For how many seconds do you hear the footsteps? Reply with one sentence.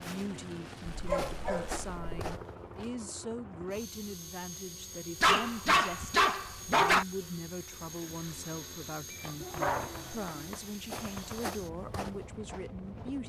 The footsteps can be heard for 5 seconds in total.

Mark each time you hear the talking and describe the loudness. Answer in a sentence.
The talking can be heard from 0.0 to 13.2 s, at a steady volume.